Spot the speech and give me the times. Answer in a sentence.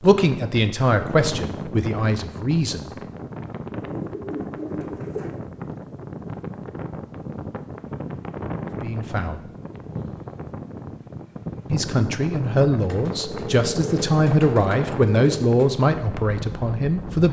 You can hear the speech from 0.0 to 2.9 s, from 8.8 to 9.4 s and from 11.7 to 17.2 s.